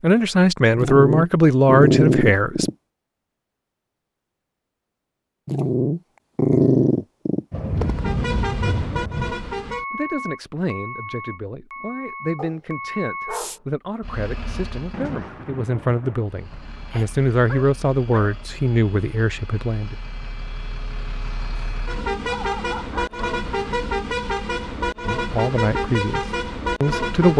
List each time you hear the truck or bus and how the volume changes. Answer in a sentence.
The truck or bus can be heard from 7.8 to 15.1 s, getting quieter; and from 16.2 to 27.3 s, getting louder.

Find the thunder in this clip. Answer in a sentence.
You can hear the thunder from 7.5 to 9.3 s and from 14.9 to 16.9 s.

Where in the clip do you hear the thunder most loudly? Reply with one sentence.
The volume of the thunder peaks at 8 seconds.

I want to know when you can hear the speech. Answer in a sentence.
You can hear the speech from 0.0 to 2.6 s, from 9.9 to 19.9 s and from 25.1 to 27.3 s.